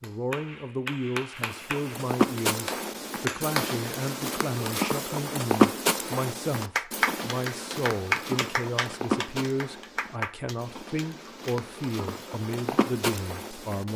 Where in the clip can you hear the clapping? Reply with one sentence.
The clapping can be heard from 0.0 to 3.8 s and from 6.6 to 11.6 s.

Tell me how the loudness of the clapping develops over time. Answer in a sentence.
The loudness of the clapping goes up, then down.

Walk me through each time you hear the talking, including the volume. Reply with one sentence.
The talking can be heard from 0.0 to 13.9 s, at a steady volume.